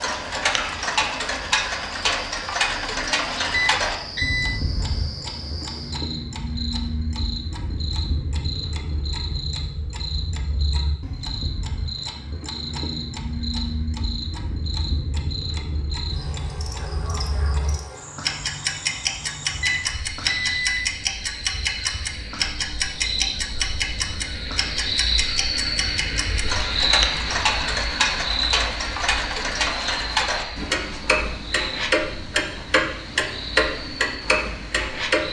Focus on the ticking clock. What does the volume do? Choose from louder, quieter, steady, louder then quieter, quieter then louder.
quieter then louder.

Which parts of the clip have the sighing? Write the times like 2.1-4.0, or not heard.
not heard.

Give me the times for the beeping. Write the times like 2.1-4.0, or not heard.
3.5-4.6, 19.6-21.0.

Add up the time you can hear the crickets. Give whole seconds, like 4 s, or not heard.
35 s.